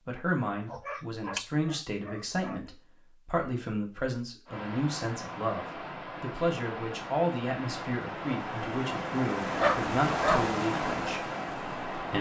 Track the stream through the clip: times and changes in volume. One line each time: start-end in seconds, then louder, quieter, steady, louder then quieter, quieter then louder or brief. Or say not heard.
4.5-12.1 louder.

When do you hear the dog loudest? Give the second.
10 s.